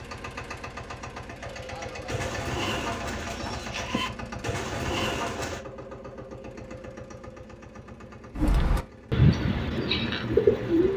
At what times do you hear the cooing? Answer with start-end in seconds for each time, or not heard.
2.0-5.6, 8.3-10.9.